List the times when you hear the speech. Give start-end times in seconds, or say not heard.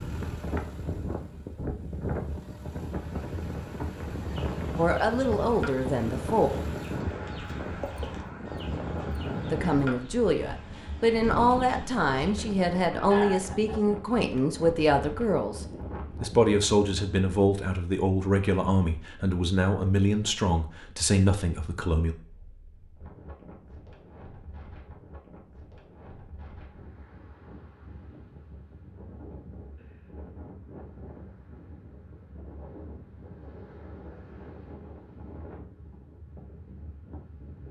4.8-6.5, 9.5-22.1.